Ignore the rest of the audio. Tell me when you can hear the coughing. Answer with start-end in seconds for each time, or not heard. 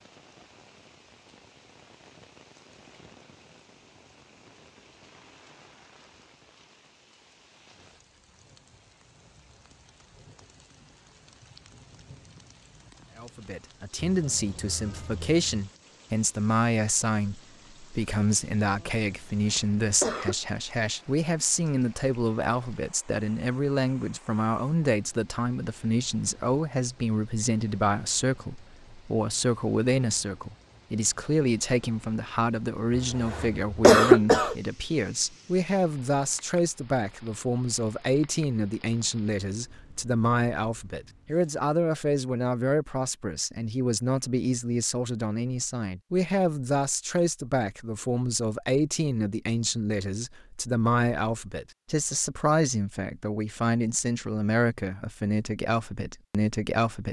19.3-20.4, 33.0-34.5.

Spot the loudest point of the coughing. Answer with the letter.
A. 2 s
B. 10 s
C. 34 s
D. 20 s
C.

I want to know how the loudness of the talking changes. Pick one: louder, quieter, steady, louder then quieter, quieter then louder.
steady.